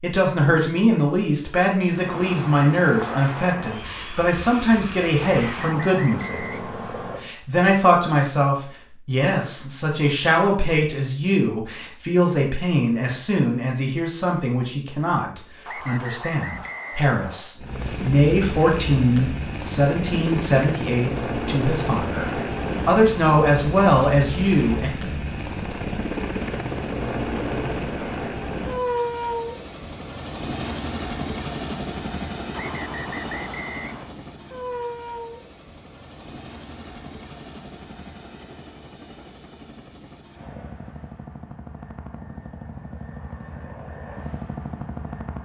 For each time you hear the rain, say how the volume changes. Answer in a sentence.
The rain can't be heard in this clip.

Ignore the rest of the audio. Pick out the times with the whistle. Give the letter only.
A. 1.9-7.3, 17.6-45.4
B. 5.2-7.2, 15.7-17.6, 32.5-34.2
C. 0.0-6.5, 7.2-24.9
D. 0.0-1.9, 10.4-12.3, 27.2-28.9
B.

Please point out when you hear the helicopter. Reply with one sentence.
The helicopter can be heard from 1.9 to 7.3 s and from 17.6 to 45.4 s.